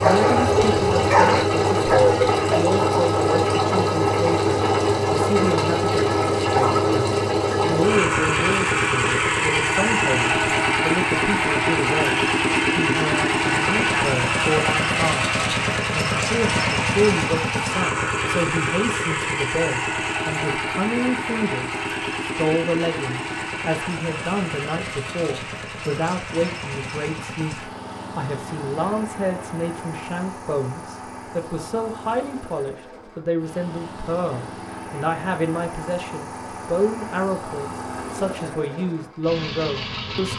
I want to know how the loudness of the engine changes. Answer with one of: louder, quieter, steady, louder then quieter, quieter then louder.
quieter.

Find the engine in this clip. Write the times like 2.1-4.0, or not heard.
0.0-40.3.